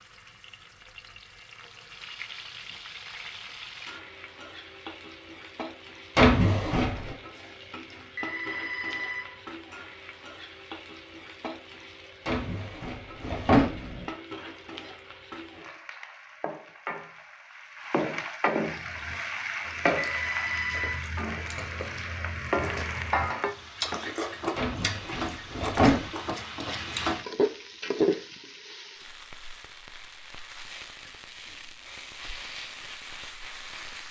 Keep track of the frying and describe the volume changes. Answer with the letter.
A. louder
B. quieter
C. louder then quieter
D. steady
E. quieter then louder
A.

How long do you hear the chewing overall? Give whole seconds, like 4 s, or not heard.
8 s.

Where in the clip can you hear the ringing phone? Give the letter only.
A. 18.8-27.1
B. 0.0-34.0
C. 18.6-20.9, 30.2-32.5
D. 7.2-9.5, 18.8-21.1
D.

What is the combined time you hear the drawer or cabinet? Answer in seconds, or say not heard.
4 s.